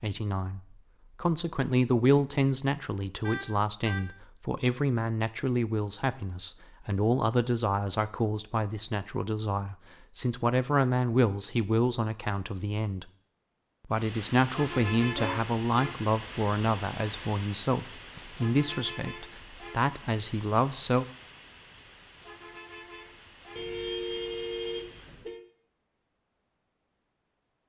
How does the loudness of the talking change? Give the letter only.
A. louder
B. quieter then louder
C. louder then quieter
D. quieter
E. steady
E.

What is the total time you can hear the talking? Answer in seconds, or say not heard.
20 s.